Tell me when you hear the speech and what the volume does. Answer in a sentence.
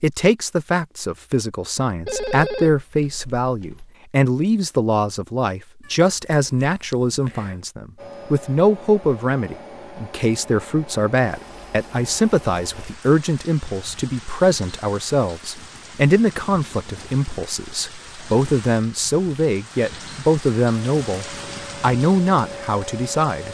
You can hear the speech from 0.0 to 23.4 s, at a steady volume.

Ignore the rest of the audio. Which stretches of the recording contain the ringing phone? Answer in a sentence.
The ringing phone can be heard from 2.0 to 4.0 s.